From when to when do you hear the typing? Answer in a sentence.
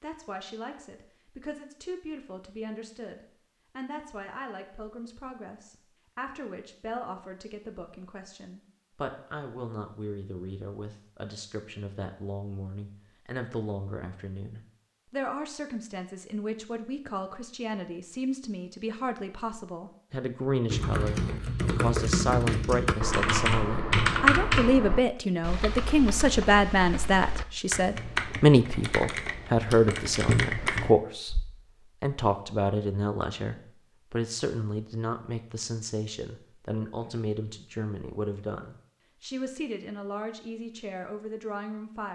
You can hear the typing from 20.7 to 31.4 s.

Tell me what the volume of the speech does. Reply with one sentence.
The loudness of the speech goes up, then down.